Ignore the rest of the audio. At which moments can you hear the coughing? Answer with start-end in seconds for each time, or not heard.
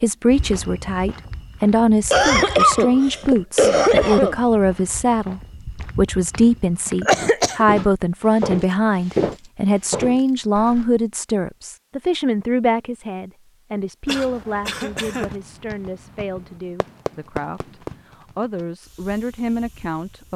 2.1-4.3, 7.0-7.7, 14.1-15.3.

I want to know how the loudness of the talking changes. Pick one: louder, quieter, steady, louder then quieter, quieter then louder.
quieter.